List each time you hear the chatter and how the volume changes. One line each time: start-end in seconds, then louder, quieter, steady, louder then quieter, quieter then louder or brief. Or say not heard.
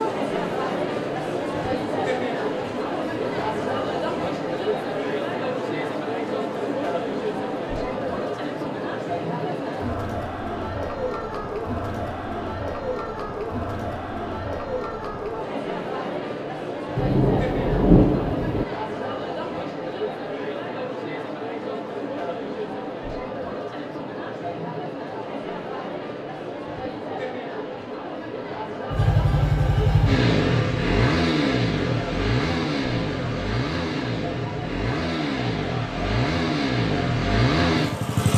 0.0-38.3 quieter.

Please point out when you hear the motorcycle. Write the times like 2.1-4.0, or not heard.
28.9-38.3.